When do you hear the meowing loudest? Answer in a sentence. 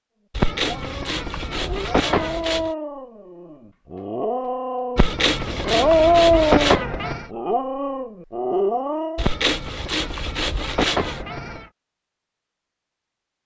The volume of the meowing peaks at 7 seconds.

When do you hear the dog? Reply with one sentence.
The dog can be heard from 0.6 to 9.2 s.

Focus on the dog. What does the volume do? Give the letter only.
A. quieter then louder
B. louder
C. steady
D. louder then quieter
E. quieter
D.